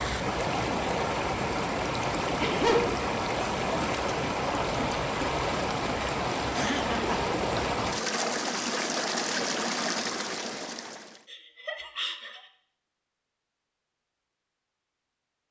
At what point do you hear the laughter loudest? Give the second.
3 s.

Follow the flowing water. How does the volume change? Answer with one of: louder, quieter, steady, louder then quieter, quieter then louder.
steady.